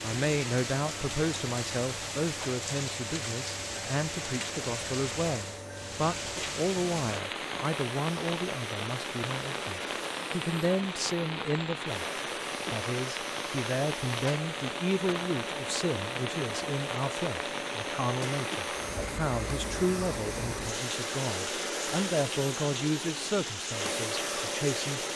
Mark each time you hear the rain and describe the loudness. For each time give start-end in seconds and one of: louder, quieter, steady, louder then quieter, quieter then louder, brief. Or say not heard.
0.0-25.1 steady.